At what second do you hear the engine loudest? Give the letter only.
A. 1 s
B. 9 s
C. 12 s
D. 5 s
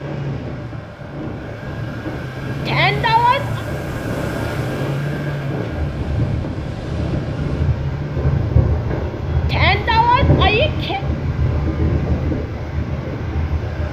D.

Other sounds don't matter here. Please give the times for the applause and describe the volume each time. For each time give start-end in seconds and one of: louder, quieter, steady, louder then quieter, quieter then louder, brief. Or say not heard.
not heard.